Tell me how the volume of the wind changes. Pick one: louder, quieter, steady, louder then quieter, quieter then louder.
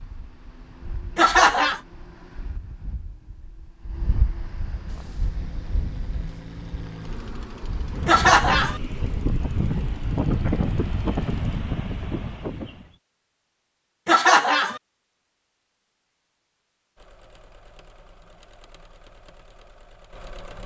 louder.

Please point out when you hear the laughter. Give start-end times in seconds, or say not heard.
1.1-1.8, 8.1-8.8, 14.1-14.8.